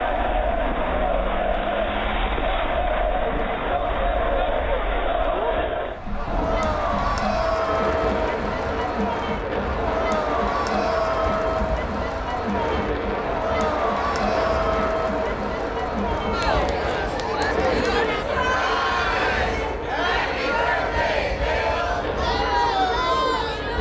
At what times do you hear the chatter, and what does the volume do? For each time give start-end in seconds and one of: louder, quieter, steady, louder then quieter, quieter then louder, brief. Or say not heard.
0.0-23.7 steady.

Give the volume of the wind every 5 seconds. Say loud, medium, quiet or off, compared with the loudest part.
quiet, loud, loud, loud, loud.